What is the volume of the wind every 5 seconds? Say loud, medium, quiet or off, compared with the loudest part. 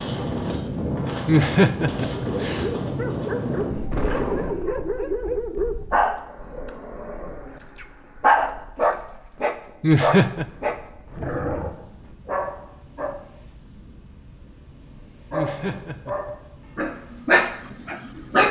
loud, quiet, quiet, quiet.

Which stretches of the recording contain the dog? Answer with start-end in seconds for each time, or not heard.
2.1-13.2, 15.3-18.4.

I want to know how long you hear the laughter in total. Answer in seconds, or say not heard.
3 s.